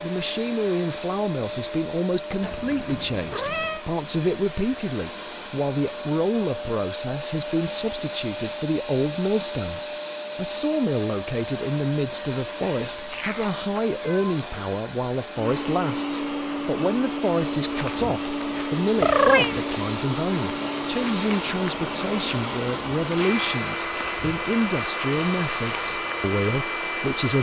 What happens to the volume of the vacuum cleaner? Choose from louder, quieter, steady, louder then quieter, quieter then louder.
steady.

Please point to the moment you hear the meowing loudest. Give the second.
19 s.